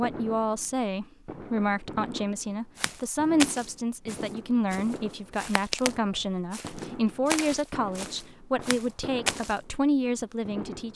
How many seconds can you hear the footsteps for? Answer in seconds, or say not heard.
7 s.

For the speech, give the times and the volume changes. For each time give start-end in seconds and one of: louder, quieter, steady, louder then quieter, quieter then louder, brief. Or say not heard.
0.0-10.9 steady.